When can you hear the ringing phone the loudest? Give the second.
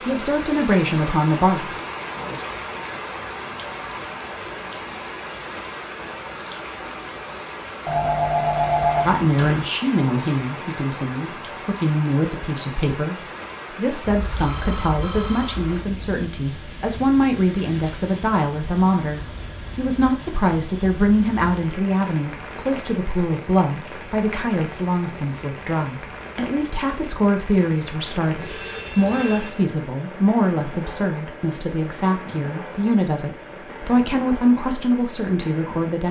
9 s.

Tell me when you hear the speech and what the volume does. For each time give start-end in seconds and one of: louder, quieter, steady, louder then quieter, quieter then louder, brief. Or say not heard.
0.0-1.8 brief
9.1-36.0 steady.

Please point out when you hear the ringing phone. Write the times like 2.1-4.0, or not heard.
7.8-9.6, 14.1-15.7, 28.4-29.6.